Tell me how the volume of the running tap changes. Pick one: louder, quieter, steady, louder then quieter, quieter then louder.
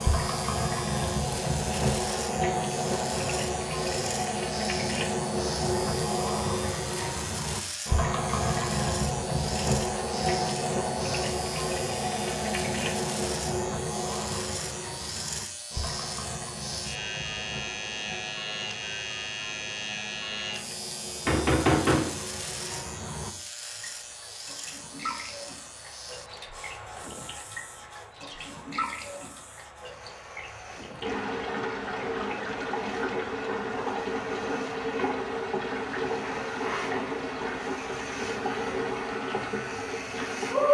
quieter then louder.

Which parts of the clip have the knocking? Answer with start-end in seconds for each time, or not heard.
21.2-22.1.